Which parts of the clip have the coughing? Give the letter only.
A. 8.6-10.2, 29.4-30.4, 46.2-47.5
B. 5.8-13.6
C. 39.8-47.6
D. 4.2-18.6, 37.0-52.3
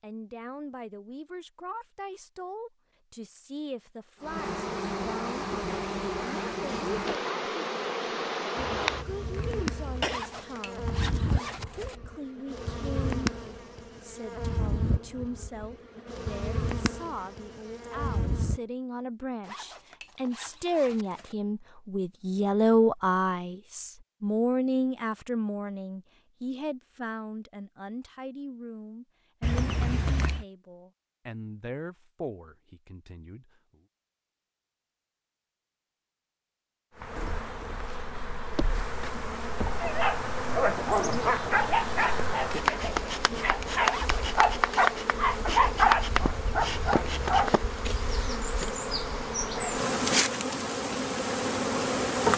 A.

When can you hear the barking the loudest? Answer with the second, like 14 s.
46 s.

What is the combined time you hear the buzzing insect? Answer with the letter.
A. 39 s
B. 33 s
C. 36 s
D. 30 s
D.